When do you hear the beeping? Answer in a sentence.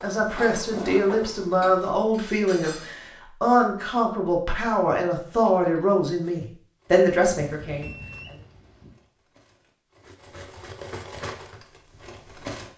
The beeping can be heard from 7.4 to 8.9 s.